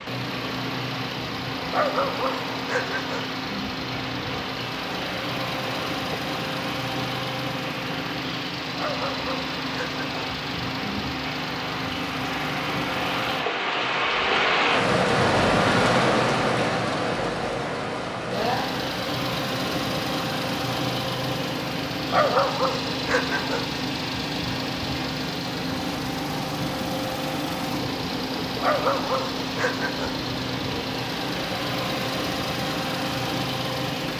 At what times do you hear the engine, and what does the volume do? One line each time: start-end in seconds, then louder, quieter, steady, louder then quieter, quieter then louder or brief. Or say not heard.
0.0-13.4 steady
18.3-34.1 steady.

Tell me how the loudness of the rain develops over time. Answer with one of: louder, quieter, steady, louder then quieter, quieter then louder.
louder then quieter.